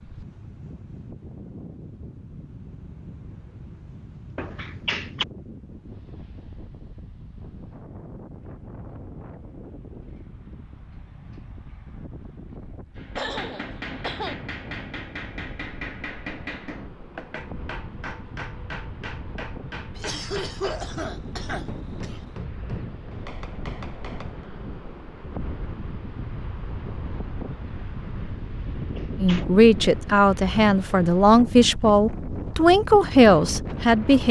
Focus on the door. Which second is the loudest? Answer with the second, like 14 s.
5 s.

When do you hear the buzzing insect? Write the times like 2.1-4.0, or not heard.
not heard.